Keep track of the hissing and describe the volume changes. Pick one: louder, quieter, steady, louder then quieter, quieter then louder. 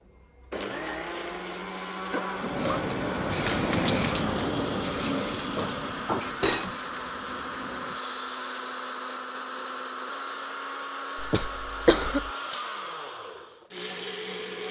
quieter.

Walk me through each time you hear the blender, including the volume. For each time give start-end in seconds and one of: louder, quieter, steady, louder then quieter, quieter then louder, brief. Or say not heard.
0.0-14.6 steady.